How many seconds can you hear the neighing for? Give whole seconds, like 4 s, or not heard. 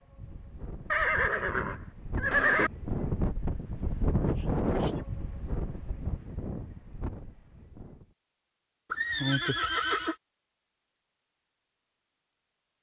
3 s.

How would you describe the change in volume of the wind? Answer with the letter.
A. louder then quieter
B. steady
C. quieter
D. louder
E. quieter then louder
A.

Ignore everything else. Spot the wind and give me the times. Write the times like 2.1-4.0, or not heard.
0.0-8.1.